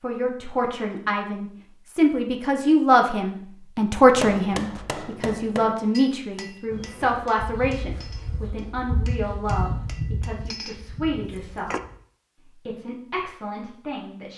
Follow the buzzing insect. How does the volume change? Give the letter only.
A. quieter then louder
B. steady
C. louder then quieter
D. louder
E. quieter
C.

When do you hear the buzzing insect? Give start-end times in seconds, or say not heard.
6.7-11.9.